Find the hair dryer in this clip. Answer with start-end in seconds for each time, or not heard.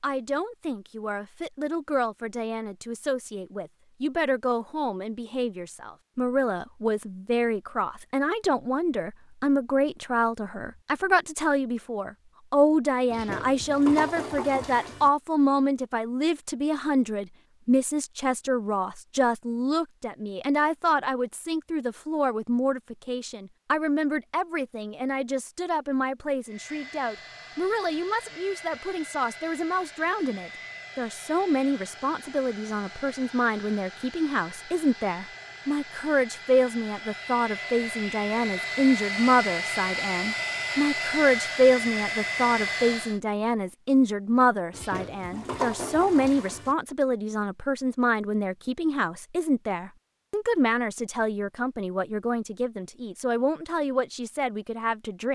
26.4-43.2.